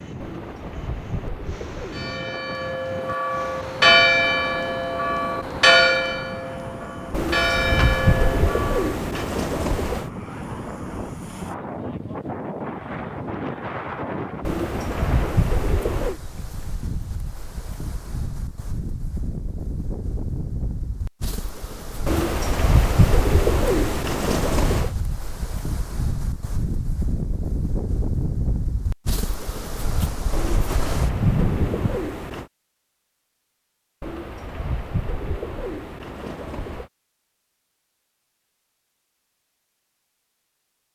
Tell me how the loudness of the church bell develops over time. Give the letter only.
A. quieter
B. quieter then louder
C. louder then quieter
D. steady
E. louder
C.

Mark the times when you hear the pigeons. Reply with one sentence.
The pigeons can be heard from 0.2 to 2.1 s, from 7.1 to 10.1 s, from 14.4 to 16.2 s, from 22.1 to 24.9 s, from 30.3 to 32.5 s and from 34.0 to 36.9 s.